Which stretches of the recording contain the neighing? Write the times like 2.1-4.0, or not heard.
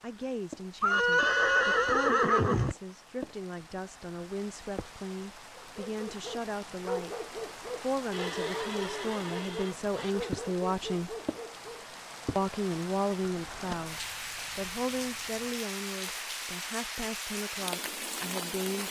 0.8-2.8, 8.1-10.2, 13.5-15.6.